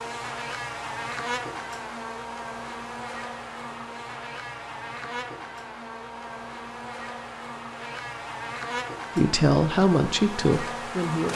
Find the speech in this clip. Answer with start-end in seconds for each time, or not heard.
9.2-11.3.